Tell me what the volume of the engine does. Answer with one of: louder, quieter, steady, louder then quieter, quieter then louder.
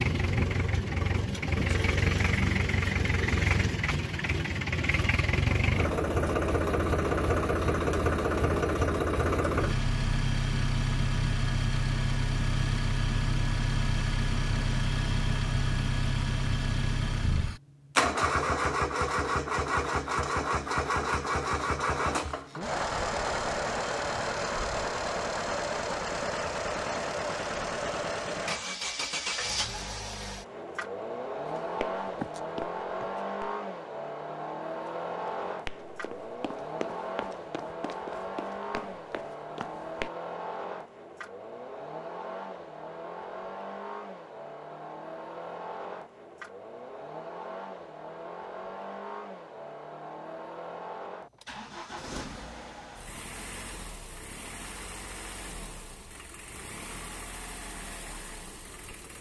quieter.